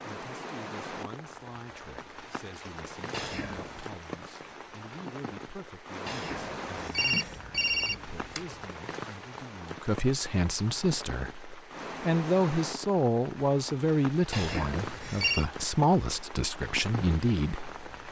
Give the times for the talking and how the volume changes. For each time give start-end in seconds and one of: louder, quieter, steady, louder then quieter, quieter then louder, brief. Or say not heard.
0.0-17.8 louder.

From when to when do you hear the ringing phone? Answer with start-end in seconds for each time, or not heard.
3.1-3.9, 6.0-8.7, 14.3-15.4.